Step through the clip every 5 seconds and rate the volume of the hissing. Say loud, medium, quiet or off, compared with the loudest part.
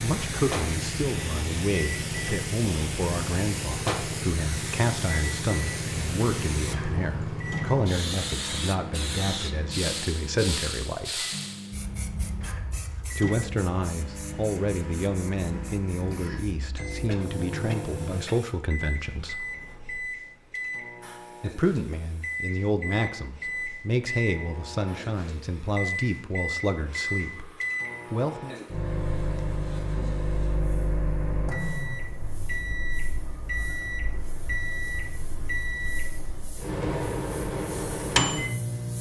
loud, loud, medium, quiet, quiet, quiet, quiet, quiet.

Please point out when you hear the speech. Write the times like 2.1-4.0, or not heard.
0.0-11.2, 13.2-19.4, 21.4-27.5, 28.1-28.6.